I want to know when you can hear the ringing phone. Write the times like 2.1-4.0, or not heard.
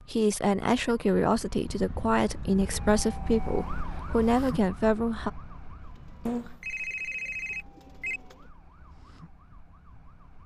6.2-8.2.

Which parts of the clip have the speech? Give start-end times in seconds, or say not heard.
0.1-5.3.